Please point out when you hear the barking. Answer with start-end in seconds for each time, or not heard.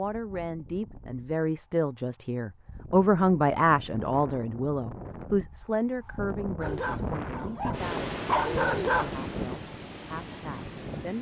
6.6-9.2.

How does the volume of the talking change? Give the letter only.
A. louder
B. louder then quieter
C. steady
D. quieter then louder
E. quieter
B.